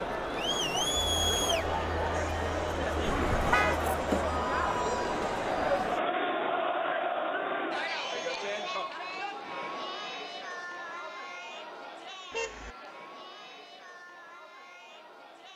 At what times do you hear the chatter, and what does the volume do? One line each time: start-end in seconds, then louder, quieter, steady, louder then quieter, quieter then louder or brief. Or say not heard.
0.0-15.5 quieter.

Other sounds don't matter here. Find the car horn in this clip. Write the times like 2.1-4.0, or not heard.
3.0-3.8, 12.3-12.8.